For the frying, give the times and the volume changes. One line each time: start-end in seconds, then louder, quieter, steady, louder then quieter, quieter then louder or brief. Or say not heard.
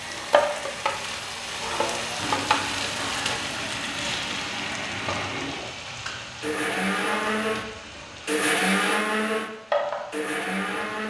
0.0-11.0 quieter then louder.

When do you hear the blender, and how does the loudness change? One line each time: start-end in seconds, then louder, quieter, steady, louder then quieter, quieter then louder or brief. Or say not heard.
0.0-11.0 louder.